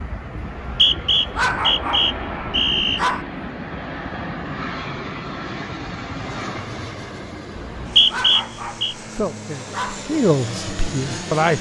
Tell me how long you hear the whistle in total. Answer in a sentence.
You can hear the whistle for 4 seconds altogether.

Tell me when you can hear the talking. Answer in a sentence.
You can hear the talking from 9.2 to 11.5 s.